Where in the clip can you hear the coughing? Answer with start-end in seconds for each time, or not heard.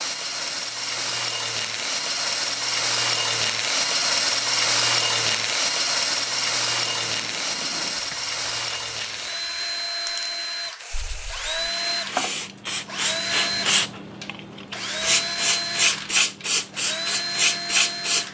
not heard.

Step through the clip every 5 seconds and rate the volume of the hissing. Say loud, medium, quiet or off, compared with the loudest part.
quiet, quiet, medium, loud.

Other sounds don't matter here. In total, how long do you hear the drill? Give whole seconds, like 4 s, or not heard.
18 s.